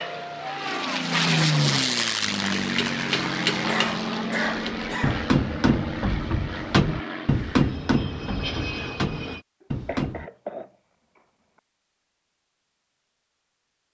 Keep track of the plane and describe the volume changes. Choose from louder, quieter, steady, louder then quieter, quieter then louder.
quieter.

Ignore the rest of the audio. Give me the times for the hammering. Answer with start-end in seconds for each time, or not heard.
2.9-10.3.